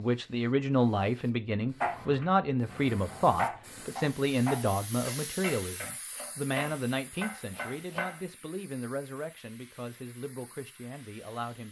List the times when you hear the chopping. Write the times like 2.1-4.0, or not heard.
1.8-8.2.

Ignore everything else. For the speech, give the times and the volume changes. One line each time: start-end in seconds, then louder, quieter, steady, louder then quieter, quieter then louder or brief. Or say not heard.
0.0-11.6 quieter.